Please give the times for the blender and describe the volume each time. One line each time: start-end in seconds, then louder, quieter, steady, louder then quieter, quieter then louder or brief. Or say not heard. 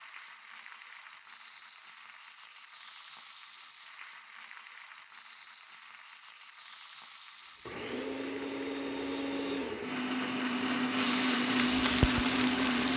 7.7-12.9 louder.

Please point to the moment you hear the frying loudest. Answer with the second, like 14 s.
12 s.